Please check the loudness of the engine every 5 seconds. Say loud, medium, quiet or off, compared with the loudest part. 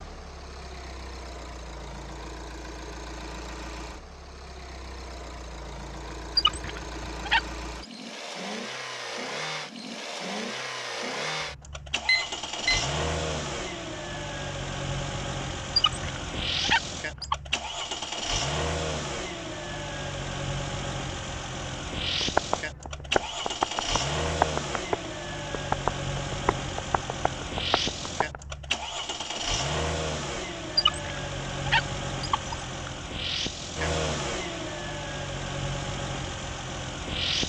medium, medium, loud, loud, loud, loud, loud, loud.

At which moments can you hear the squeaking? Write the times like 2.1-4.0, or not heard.
6.3-7.9, 15.8-17.4, 30.8-32.6.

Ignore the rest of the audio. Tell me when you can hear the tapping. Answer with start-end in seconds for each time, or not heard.
22.0-28.4.